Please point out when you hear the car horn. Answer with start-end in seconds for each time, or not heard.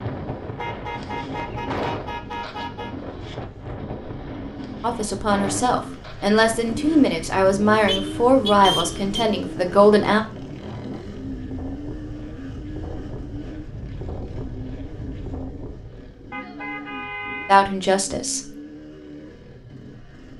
0.6-3.0, 7.8-9.2, 16.3-17.6.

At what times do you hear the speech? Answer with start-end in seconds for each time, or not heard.
4.8-10.2, 17.4-18.5.